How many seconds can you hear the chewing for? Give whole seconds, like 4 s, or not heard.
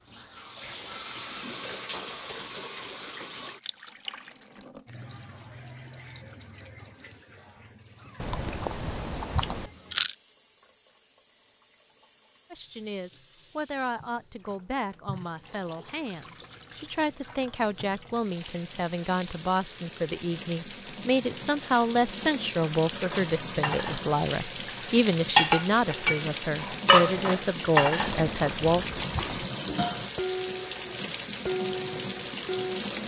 3 s.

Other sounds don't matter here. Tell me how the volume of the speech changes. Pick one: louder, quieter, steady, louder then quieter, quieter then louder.
louder.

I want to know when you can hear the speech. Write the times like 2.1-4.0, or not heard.
12.5-28.9.